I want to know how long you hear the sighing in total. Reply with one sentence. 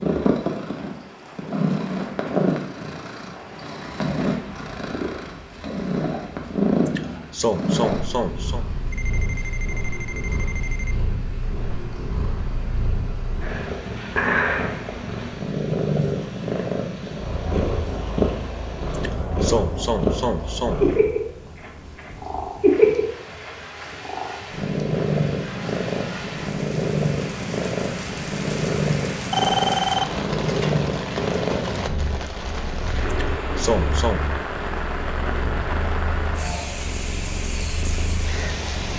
The sighing can be heard for 5 seconds in total.